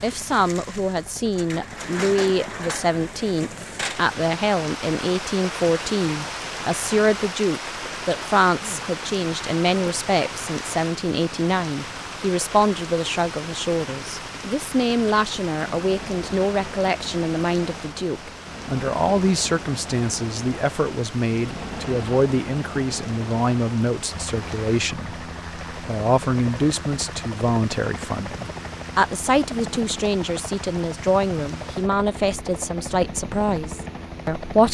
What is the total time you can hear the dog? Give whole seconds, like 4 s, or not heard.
not heard.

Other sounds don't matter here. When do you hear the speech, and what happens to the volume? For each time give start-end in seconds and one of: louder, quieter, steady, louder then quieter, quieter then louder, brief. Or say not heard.
0.0-34.6 steady.